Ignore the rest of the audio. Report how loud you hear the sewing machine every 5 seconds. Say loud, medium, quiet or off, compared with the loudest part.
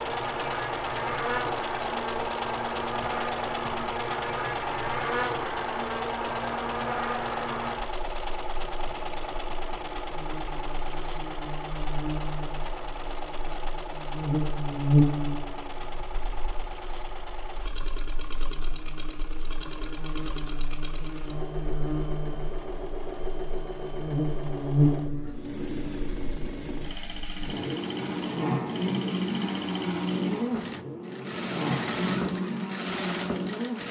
loud, loud, medium, medium, medium, loud, loud.